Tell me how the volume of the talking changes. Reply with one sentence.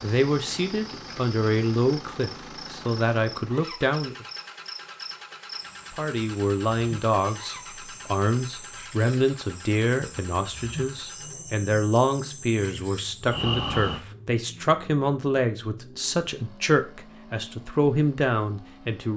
The volume of the talking stays about the same.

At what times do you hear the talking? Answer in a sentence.
The talking can be heard from 0.0 to 4.2 s and from 5.9 to 19.1 s.